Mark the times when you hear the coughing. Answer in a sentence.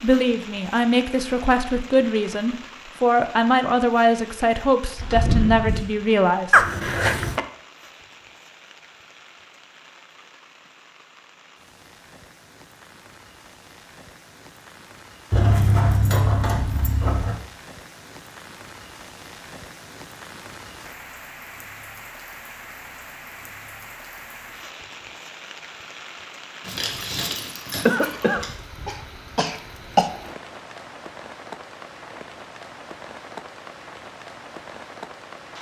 The coughing can be heard from 6.5 to 7.5 s and from 27.9 to 30.1 s.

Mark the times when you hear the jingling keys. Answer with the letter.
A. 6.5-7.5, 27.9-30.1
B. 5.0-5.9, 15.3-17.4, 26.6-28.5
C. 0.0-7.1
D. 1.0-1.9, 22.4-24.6
B.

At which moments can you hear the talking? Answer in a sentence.
You can hear the talking from 0.0 to 7.1 s.